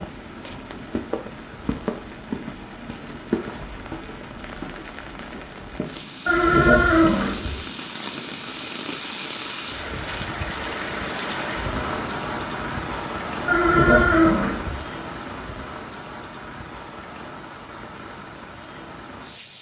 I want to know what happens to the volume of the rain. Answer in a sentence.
The loudness of the rain goes up, then down.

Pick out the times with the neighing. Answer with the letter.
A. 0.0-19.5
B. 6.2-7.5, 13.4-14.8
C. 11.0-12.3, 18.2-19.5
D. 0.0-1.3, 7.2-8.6
B.